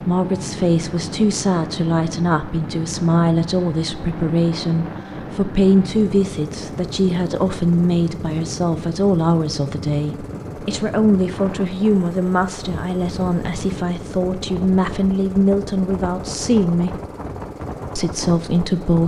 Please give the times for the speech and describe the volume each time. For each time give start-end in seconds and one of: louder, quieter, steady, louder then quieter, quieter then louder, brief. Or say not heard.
0.0-16.9 steady
17.9-19.0 brief.